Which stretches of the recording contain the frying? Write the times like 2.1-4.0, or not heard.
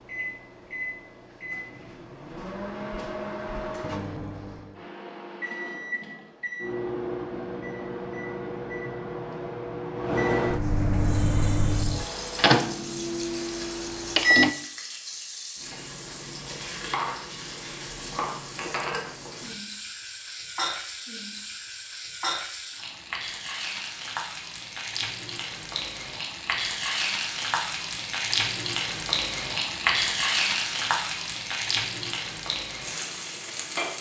10.9-33.9.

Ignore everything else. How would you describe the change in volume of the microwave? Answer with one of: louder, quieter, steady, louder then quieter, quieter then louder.
louder.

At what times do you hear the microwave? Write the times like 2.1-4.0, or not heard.
0.0-14.6.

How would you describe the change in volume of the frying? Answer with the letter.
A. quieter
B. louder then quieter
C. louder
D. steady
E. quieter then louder
C.